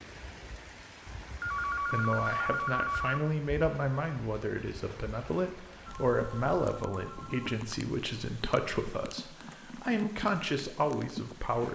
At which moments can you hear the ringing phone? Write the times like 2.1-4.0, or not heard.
1.4-3.2, 5.8-7.7.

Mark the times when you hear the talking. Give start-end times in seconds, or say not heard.
1.9-11.6.